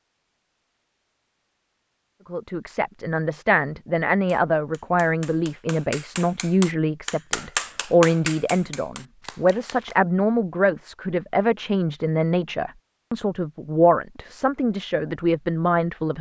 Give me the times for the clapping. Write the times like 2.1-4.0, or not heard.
4.2-10.0.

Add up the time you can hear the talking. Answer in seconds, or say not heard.
14 s.